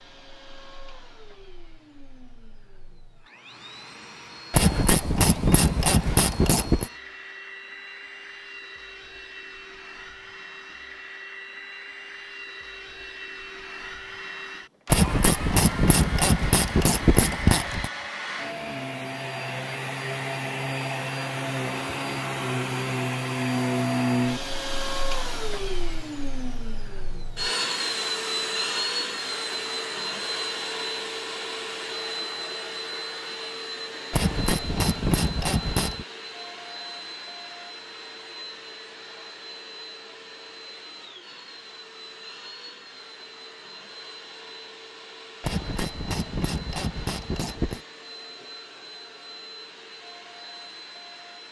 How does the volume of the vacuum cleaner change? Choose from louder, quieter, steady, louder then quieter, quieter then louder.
louder then quieter.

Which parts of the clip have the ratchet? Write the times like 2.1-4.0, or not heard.
4.5-6.9, 14.8-17.9, 34.1-36.0, 45.4-47.8.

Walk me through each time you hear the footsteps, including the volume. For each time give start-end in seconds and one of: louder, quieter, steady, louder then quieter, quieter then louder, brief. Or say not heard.
not heard.